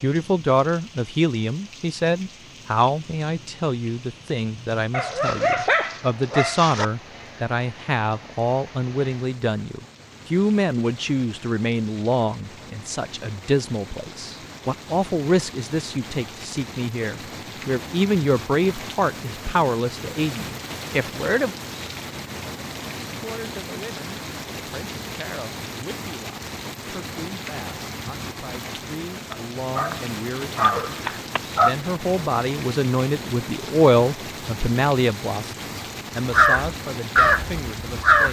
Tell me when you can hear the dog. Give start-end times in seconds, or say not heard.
4.9-6.8, 29.3-31.8.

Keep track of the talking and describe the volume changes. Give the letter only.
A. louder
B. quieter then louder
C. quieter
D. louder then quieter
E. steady
B.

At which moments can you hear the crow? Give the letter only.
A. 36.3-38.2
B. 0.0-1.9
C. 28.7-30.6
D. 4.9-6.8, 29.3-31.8
A.